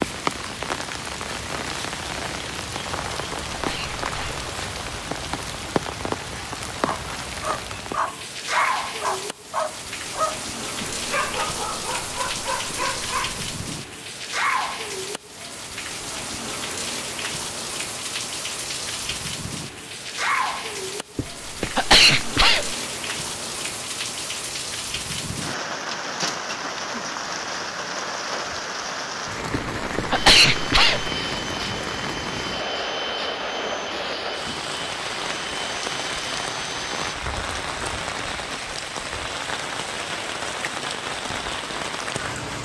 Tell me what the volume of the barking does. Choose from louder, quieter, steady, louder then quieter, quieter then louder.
steady.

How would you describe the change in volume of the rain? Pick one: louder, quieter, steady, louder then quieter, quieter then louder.
steady.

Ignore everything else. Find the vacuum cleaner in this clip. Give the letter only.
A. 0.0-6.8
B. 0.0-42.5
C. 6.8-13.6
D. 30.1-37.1
D.